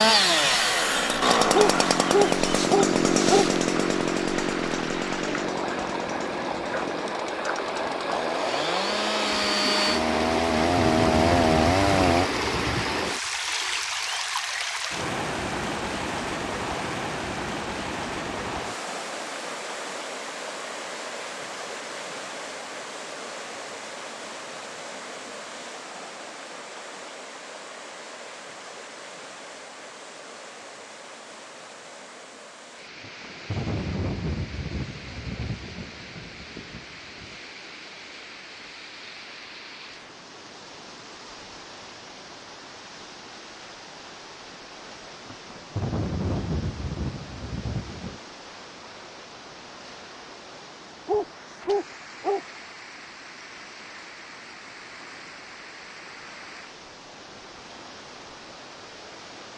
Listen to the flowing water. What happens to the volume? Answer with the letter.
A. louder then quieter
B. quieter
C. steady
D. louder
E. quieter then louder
B.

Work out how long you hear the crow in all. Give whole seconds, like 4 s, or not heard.
not heard.